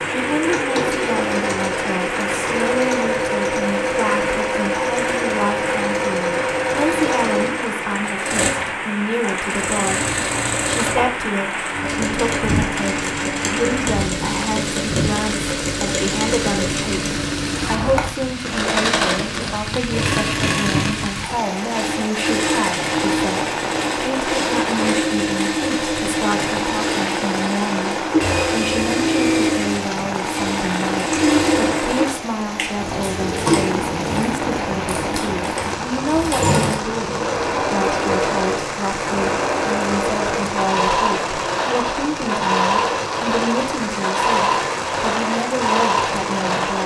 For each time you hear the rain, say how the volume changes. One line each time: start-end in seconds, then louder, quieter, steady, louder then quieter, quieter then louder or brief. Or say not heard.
0.0-46.8 steady.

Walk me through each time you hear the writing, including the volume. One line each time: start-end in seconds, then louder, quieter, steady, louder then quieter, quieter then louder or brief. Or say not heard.
not heard.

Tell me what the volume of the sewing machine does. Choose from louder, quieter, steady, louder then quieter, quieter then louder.
steady.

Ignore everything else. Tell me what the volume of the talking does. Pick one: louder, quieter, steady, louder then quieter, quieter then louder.
steady.